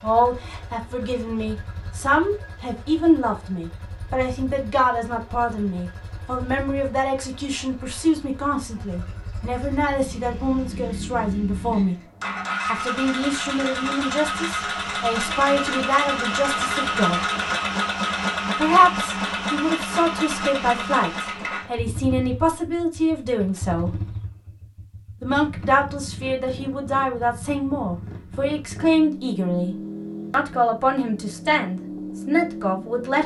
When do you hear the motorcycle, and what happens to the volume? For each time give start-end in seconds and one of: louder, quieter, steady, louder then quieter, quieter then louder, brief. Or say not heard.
0.0-33.2 louder then quieter.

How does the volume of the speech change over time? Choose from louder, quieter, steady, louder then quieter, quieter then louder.
steady.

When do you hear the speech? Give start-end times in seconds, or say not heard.
0.0-11.9, 12.7-17.2, 18.6-23.9, 25.2-33.2.